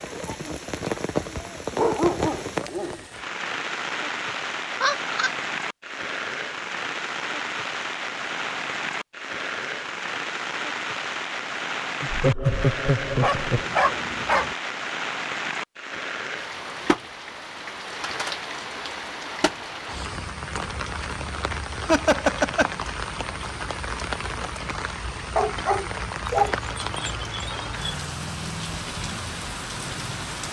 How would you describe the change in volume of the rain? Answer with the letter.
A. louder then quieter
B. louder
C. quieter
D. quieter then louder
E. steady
E.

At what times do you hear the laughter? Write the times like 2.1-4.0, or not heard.
4.8-5.3, 12.0-13.7, 21.9-22.7.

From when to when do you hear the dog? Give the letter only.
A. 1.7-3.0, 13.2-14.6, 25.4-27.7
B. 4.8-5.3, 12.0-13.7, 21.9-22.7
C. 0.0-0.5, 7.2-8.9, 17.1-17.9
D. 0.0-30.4
A.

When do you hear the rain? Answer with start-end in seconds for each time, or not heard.
0.0-30.4.